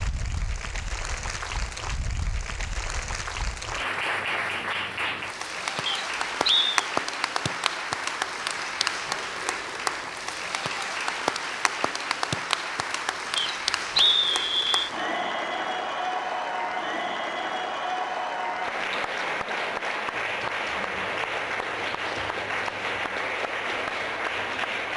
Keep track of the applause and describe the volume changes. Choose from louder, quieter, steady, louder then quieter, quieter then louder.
steady.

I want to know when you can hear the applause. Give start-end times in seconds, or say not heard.
0.0-24.9.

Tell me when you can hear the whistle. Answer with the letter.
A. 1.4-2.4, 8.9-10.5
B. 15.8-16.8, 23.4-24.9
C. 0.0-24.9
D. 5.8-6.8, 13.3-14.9
D.